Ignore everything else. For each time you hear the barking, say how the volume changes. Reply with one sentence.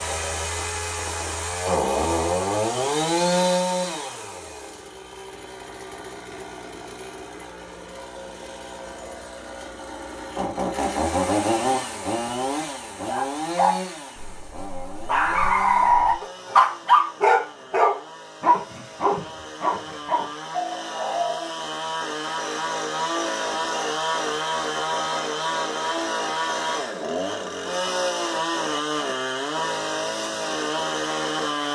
You can hear the barking from 13.1 to 21.4 s, getting louder then quieter.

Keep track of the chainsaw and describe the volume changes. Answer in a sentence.
The volume of the chainsaw goes down, then up.